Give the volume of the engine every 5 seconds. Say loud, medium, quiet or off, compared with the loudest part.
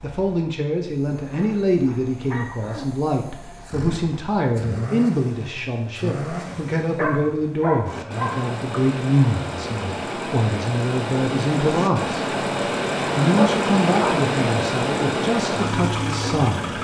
quiet, medium, loud, loud.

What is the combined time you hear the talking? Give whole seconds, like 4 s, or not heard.
16 s.